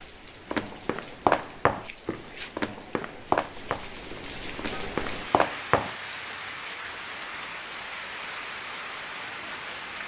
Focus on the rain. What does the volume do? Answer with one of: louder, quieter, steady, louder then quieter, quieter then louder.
louder.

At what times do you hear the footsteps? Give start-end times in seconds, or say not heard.
0.5-6.0.